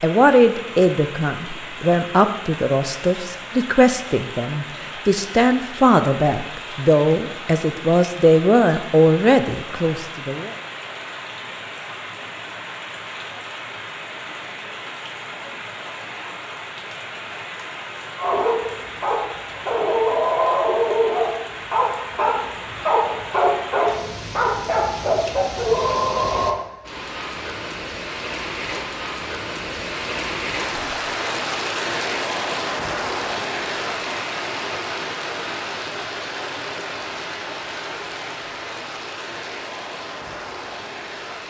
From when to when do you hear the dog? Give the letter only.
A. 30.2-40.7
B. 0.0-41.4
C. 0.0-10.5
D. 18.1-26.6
D.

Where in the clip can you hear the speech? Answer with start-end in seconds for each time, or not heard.
0.0-10.5.